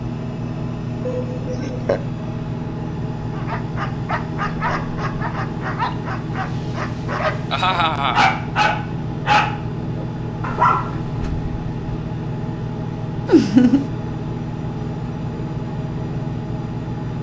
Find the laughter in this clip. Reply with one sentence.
The laughter can be heard from 1.1 to 2.0 s, from 7.5 to 8.2 s and from 13.2 to 13.8 s.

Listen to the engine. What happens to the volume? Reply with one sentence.
The loudness of the engine stays about the same.